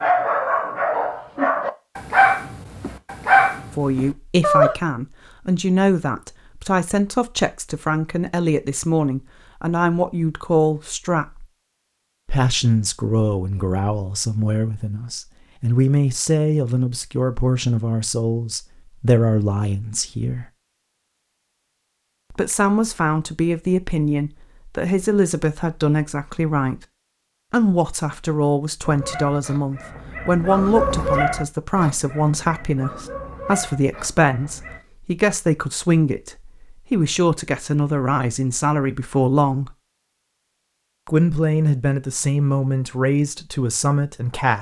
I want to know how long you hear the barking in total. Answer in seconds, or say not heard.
11 s.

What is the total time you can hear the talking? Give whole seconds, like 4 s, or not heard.
36 s.